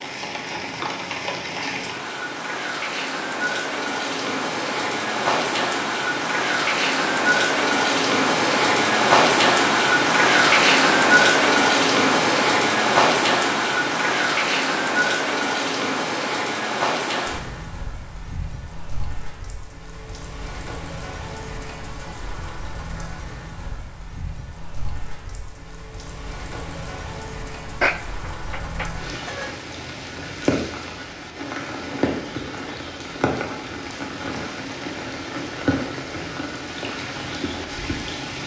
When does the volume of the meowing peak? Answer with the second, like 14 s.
28 s.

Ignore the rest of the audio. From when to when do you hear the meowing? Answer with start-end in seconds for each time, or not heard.
27.8-29.6.